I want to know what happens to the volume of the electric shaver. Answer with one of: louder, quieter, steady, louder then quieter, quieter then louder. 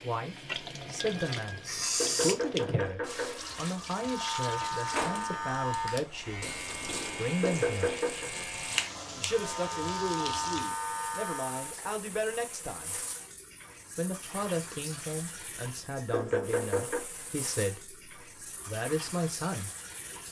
quieter then louder.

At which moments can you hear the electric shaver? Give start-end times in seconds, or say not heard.
3.9-11.8.